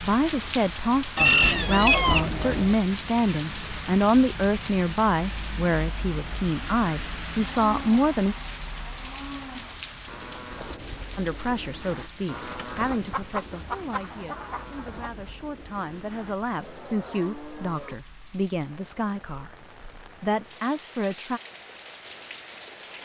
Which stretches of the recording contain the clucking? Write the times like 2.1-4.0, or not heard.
1.1-2.8, 12.3-15.1.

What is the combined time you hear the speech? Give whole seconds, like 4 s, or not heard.
18 s.